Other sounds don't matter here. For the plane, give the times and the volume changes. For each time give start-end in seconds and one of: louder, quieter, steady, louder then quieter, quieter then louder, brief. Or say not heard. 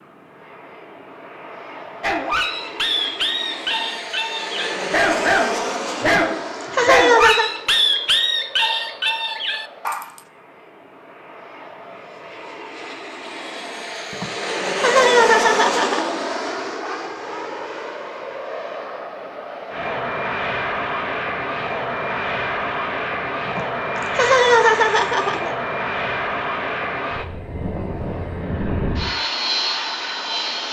0.0-30.6 quieter then louder.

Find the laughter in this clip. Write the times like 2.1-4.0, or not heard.
6.0-7.5, 14.1-16.2, 23.4-25.6.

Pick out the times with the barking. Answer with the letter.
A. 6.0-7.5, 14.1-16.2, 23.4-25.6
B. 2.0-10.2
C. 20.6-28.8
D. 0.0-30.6
B.